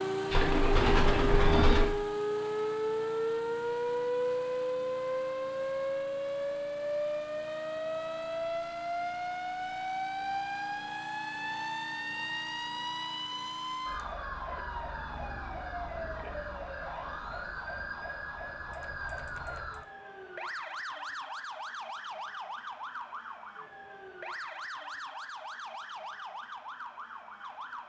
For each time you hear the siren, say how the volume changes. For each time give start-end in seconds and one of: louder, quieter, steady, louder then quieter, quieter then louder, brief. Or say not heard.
0.0-27.8 quieter.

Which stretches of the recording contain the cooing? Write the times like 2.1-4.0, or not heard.
0.3-1.9.